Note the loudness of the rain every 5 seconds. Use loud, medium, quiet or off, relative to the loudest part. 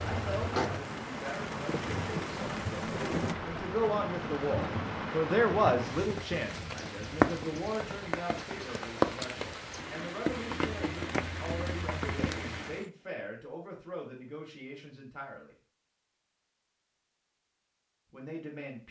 loud, loud, loud, off.